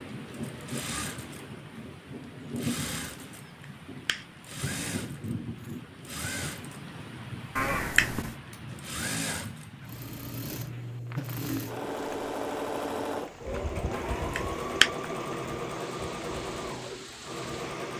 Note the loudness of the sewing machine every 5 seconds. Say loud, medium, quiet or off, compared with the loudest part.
medium, medium, loud, loud.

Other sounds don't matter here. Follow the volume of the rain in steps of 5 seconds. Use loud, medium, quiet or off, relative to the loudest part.
loud, loud, medium, medium.